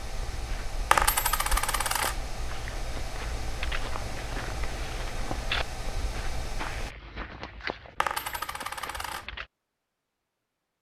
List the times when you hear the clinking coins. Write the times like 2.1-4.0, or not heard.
0.9-2.1, 8.0-9.2.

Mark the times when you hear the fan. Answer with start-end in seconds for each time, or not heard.
0.0-7.0.